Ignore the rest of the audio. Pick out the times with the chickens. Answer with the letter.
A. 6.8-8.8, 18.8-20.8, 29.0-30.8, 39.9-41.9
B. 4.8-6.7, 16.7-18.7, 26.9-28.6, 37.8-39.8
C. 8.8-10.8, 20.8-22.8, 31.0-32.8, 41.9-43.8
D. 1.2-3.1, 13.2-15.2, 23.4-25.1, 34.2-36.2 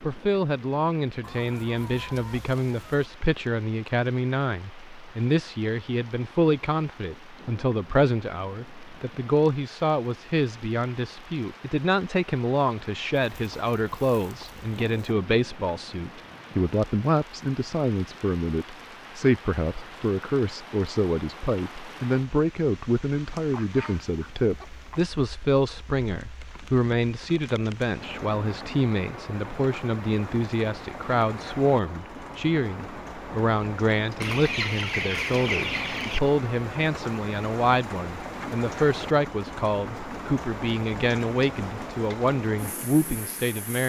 D.